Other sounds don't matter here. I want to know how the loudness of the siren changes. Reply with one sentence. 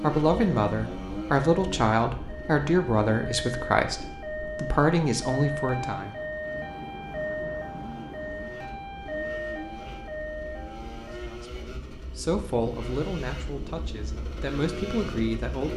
The volume of the siren goes up.